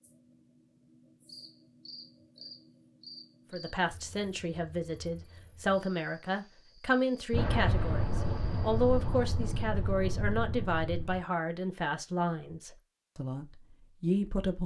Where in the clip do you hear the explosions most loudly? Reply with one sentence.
The volume of the explosions peaks at 8 seconds.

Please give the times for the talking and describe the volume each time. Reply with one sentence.
You can hear the talking from 3.5 to 14.6 s, at a steady volume.